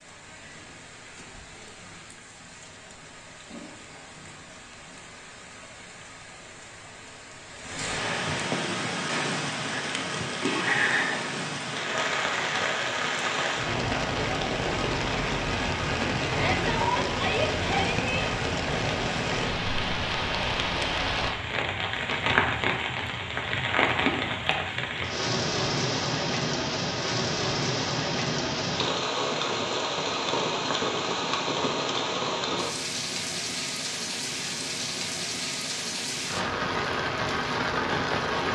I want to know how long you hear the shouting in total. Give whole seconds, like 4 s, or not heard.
2 s.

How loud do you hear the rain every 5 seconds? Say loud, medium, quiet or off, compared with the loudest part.
quiet, medium, loud, loud, loud, loud, loud, loud.